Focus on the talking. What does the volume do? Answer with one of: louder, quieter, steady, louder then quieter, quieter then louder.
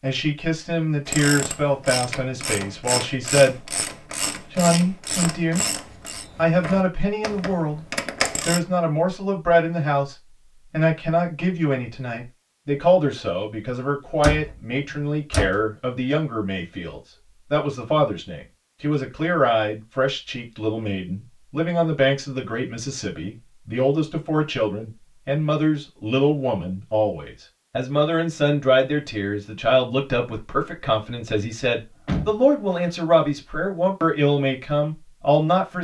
steady.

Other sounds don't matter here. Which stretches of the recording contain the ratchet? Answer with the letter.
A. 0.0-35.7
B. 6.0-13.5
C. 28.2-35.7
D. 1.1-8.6
D.